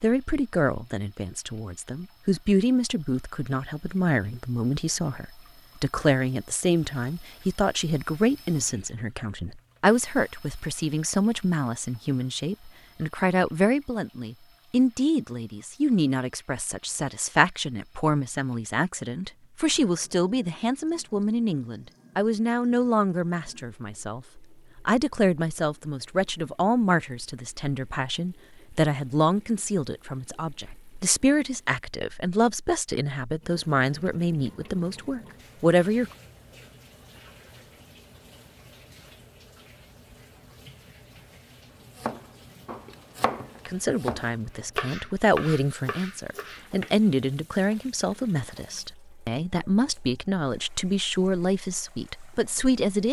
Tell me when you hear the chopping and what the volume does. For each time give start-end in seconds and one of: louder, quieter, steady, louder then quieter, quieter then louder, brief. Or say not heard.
42.0-47.1 louder then quieter.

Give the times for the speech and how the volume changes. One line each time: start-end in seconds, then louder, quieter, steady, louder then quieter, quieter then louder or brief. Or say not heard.
0.0-36.1 steady
43.6-53.0 steady.